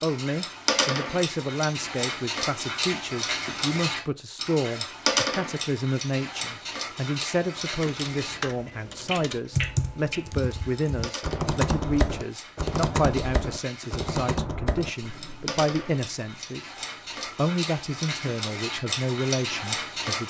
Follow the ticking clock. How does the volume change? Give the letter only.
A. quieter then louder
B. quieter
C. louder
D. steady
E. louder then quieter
A.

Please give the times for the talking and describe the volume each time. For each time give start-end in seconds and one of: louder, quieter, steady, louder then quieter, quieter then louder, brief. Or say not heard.
0.0-20.2 steady.